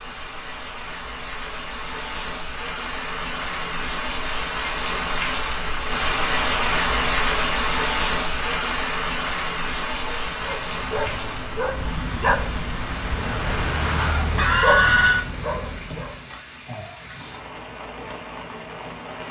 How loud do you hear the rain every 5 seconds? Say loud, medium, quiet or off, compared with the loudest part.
medium, loud, medium, quiet.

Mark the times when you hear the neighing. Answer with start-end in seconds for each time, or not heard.
14.3-15.2.